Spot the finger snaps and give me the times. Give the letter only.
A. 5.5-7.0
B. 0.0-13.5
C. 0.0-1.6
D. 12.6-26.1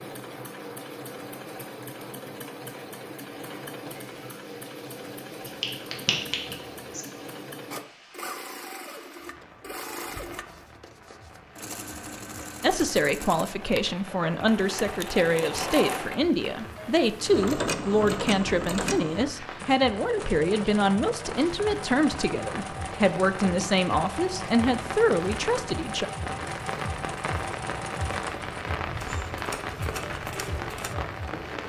A.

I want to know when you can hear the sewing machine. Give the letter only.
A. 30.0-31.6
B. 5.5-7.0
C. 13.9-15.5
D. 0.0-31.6
D.